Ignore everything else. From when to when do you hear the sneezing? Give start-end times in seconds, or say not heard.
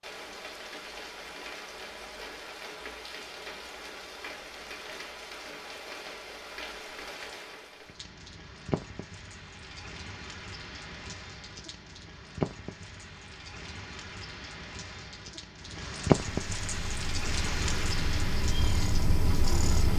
not heard.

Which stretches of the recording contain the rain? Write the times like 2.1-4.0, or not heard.
0.0-19.9.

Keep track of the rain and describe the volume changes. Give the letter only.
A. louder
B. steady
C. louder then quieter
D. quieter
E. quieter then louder
A.